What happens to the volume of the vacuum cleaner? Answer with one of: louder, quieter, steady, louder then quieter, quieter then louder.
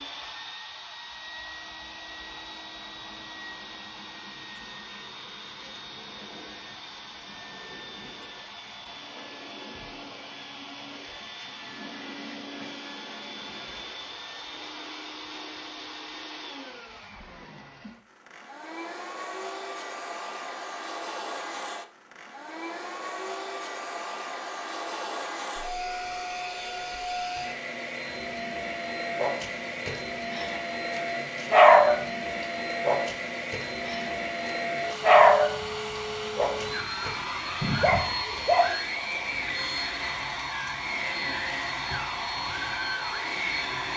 louder.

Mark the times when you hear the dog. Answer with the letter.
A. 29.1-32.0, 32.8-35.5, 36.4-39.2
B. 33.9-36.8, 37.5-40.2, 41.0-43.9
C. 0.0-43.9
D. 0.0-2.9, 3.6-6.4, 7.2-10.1
A.